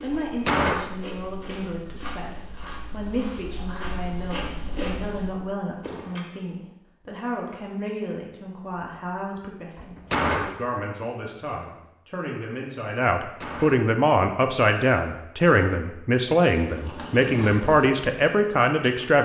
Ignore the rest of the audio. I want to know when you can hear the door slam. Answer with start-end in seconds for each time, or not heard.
0.1-1.0, 9.8-10.7, 13.2-13.9.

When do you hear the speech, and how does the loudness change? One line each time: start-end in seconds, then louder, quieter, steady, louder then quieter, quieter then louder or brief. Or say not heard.
0.0-19.1 louder.